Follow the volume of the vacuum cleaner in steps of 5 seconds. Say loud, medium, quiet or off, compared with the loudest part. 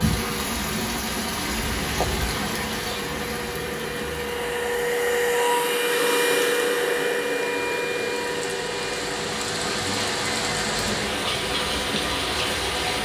medium, loud, medium.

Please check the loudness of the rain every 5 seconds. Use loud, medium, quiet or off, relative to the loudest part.
loud, medium, loud.